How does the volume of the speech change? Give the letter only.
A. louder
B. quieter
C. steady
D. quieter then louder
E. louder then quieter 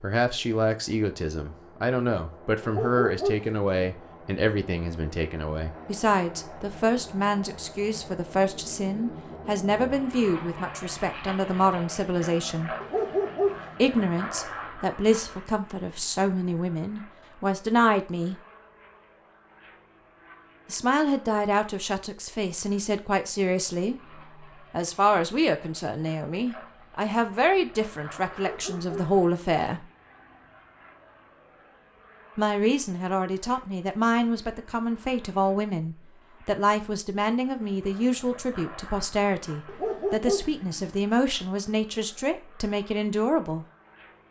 C.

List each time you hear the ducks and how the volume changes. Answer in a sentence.
You can't hear the ducks here.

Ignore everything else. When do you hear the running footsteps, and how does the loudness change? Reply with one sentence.
The running footsteps can't be heard in this clip.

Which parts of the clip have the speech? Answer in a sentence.
You can hear the speech from 0.0 to 12.7 s, from 13.8 to 18.4 s, from 20.6 to 23.9 s, from 24.7 to 29.9 s and from 32.4 to 43.6 s.